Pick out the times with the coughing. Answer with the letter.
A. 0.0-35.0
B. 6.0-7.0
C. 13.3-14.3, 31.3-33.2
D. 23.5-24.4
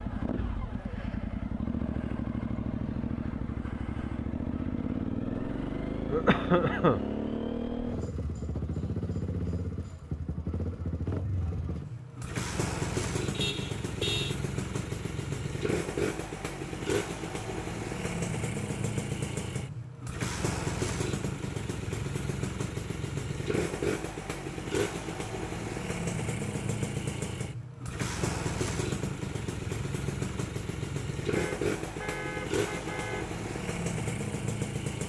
B.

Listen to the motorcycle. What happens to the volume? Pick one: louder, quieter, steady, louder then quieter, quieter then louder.
steady.